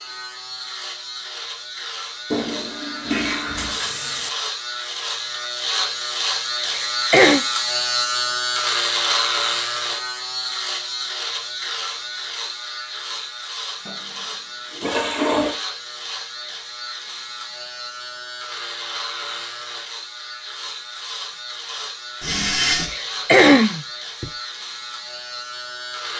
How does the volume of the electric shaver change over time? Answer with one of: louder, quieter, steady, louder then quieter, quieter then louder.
louder then quieter.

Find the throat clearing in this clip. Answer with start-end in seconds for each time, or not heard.
6.7-7.4, 22.9-24.3.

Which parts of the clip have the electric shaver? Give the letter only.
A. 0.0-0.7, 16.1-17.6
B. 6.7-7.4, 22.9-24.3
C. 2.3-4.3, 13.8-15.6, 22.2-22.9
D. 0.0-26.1
D.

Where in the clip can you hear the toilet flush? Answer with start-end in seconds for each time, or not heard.
2.3-4.3, 13.8-15.6, 22.2-22.9.